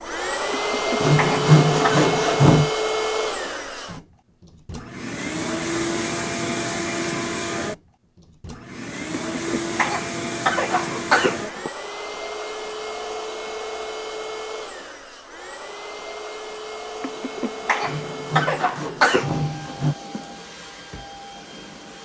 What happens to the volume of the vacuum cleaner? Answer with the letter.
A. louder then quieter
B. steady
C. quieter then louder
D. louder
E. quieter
E.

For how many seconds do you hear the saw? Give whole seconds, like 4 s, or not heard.
4 s.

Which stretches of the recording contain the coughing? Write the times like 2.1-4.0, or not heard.
0.5-2.1, 9.3-11.7, 17.0-19.3.